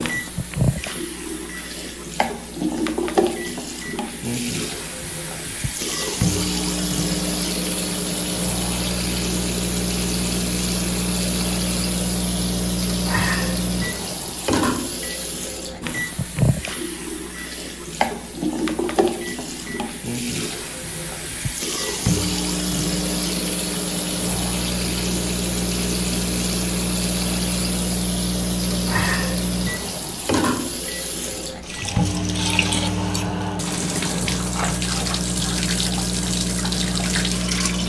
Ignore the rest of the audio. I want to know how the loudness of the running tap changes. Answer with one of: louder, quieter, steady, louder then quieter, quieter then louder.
steady.